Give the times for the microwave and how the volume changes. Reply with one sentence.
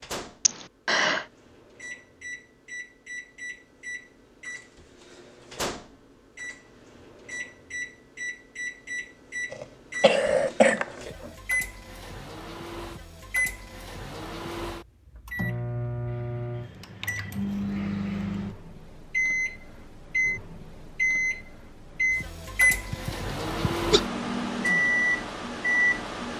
You can hear the microwave from 0.0 to 26.3 s, getting louder.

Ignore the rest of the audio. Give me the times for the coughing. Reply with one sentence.
You can hear the coughing from 0.5 to 1.2 s, from 9.5 to 11.3 s and from 22.9 to 24.0 s.